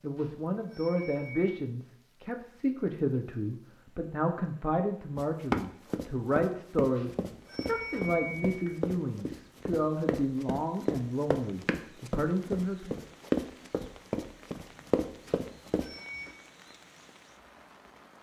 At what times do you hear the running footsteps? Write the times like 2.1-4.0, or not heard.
5.2-15.9.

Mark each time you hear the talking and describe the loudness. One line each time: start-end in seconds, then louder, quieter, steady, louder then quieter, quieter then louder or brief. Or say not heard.
0.0-13.0 steady.